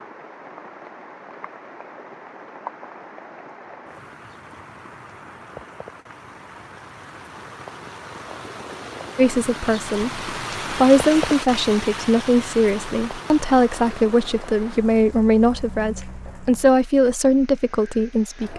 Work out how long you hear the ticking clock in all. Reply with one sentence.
You can't hear the ticking clock here.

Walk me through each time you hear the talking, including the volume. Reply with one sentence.
You can hear the talking from 9.2 to 18.5 s, at a steady volume.